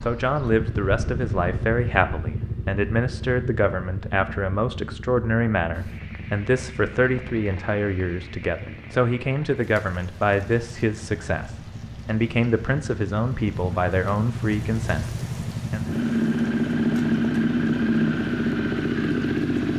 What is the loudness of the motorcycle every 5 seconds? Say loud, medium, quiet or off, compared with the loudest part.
medium, quiet, quiet, loud.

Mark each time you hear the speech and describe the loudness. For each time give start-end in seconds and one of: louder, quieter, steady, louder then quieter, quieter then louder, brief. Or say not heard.
0.0-15.8 steady.